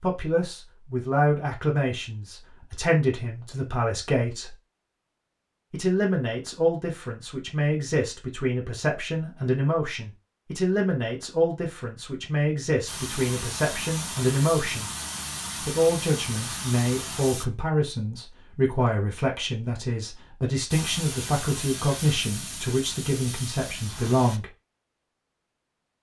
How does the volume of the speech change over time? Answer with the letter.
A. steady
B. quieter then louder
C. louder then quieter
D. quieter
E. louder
A.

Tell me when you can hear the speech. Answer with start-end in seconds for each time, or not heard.
0.0-4.5, 5.7-14.9, 15.7-24.4.